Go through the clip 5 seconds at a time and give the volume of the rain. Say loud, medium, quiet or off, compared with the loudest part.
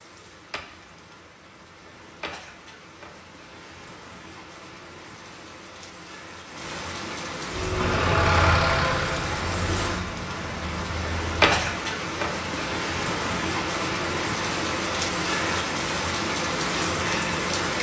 quiet, medium, loud, loud.